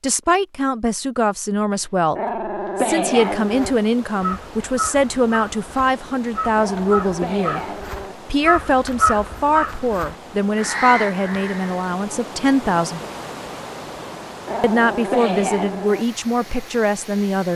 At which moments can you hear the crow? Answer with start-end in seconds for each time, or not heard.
3.4-11.9.